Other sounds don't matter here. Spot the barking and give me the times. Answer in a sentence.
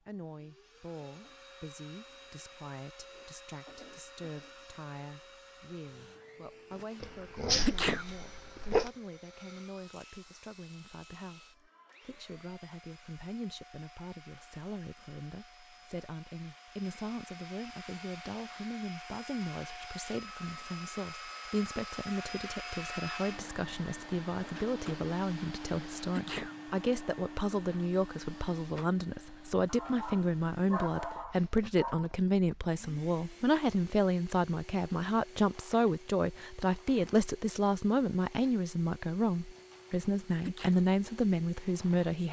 The barking can be heard from 7.0 to 8.9 s and from 29.6 to 32.1 s.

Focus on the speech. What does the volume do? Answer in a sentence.
The loudness of the speech goes up.